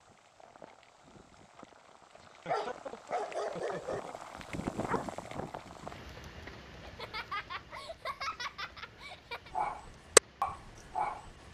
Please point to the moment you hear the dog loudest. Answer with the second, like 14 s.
10 s.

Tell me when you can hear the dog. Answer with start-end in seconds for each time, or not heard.
2.5-6.0, 9.5-11.3.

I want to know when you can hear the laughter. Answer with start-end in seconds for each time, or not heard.
2.2-4.2, 6.8-9.5.